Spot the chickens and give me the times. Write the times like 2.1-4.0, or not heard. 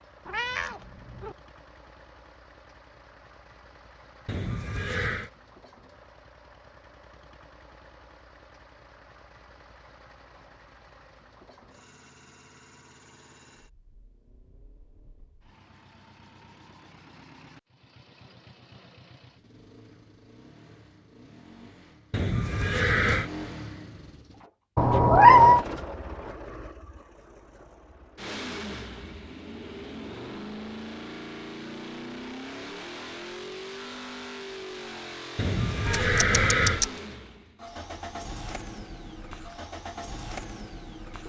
not heard.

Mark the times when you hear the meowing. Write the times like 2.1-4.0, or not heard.
0.2-1.4, 24.8-25.6, 35.9-36.9.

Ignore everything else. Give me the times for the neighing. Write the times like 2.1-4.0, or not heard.
4.2-5.3, 22.1-23.3, 35.4-36.9.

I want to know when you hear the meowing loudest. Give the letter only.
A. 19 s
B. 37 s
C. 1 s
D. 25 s
D.